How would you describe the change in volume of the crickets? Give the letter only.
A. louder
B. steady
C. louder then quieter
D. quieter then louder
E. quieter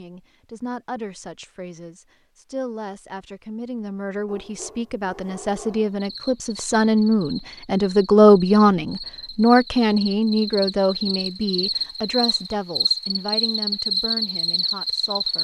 A.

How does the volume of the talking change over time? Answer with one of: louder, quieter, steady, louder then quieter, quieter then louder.
louder then quieter.